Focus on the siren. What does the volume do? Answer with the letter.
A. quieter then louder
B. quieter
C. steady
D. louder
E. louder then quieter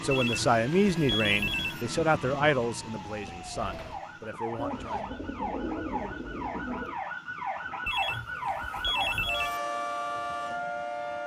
D.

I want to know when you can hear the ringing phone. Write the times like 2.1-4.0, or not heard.
0.1-1.9, 7.8-9.6.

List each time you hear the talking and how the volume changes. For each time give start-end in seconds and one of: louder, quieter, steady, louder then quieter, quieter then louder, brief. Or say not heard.
0.0-5.1 quieter.